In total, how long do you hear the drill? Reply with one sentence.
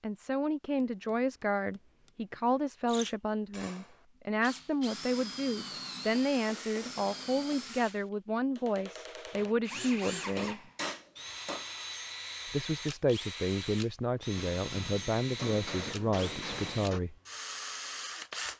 The drill can be heard for 16 seconds in total.